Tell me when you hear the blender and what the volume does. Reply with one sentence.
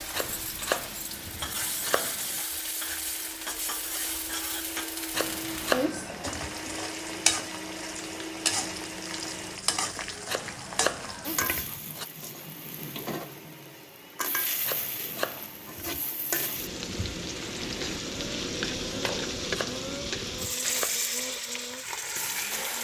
You can hear the blender from 0.0 to 9.6 s, getting louder; and from 12.1 to 22.8 s, getting louder.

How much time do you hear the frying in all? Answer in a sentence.
The frying can be heard for 23 seconds in total.